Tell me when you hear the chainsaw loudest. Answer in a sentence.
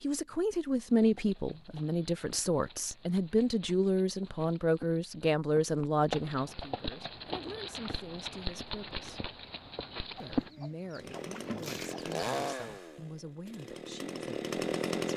The loudest moment of the chainsaw is at 15 seconds.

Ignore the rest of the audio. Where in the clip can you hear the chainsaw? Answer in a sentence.
The chainsaw can be heard from 10.9 to 15.1 s.